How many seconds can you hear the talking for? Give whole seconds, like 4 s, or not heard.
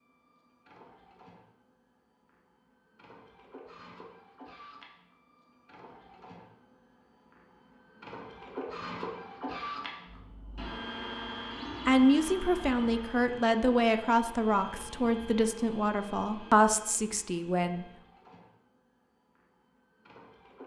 6 s.